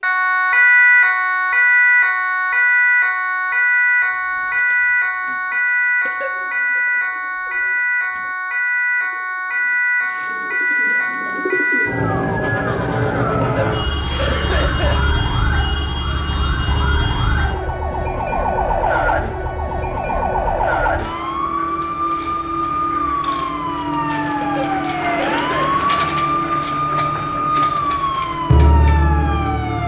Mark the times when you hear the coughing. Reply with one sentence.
You can hear the coughing from 6.0 to 6.8 s, from 13.4 to 15.2 s and from 24.4 to 25.9 s.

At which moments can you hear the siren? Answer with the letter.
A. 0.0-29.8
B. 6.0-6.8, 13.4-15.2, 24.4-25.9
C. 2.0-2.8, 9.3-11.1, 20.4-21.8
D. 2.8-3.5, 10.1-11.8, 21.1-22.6
A.